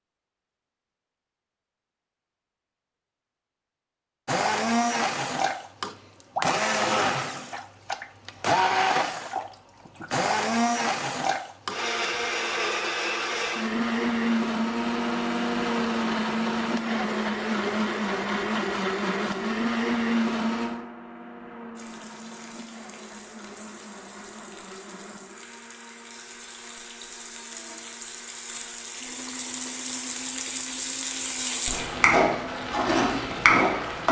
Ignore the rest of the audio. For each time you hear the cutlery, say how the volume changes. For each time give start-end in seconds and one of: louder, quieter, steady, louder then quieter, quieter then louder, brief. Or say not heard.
not heard.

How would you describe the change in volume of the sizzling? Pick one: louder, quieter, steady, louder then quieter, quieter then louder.
louder.